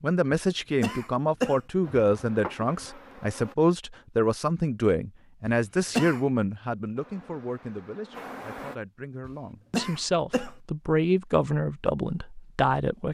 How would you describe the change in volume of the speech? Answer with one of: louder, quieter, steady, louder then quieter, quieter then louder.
quieter then louder.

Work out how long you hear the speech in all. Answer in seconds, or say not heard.
13 s.